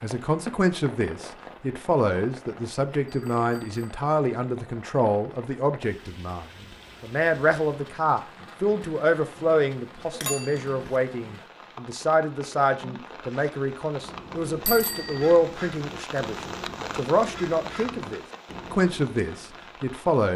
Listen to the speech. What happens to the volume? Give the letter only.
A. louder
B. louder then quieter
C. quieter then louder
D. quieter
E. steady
E.